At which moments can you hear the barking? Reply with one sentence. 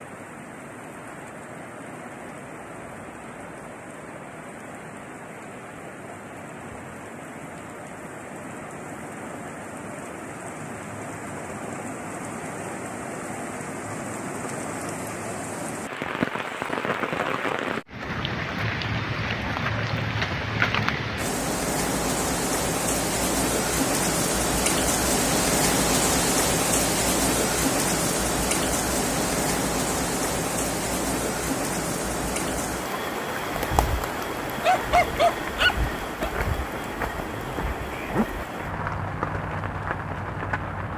The barking can be heard from 34.6 to 36.3 s.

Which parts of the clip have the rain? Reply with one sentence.
The rain can be heard from 0.0 to 40.9 s.